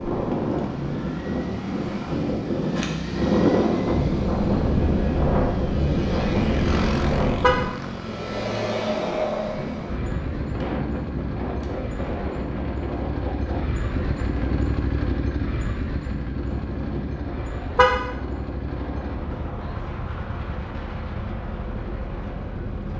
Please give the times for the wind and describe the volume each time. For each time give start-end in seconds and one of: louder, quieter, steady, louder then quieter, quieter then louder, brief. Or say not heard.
0.0-22.9 quieter.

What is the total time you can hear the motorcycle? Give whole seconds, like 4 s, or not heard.
23 s.